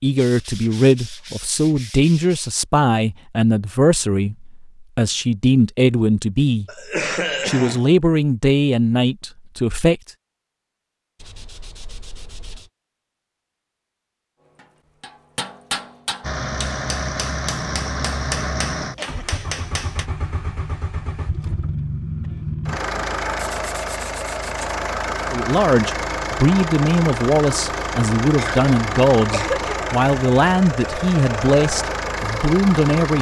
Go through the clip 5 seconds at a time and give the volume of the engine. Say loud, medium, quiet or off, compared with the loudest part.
off, off, off, loud, loud, loud, loud.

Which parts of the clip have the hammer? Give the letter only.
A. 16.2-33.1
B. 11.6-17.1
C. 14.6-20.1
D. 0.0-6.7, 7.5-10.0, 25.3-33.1
C.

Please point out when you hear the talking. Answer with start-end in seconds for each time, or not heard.
0.0-6.7, 7.5-10.0, 25.3-33.1.